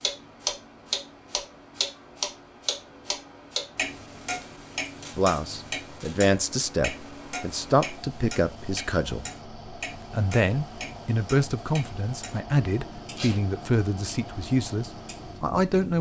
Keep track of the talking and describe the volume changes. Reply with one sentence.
The loudness of the talking stays about the same.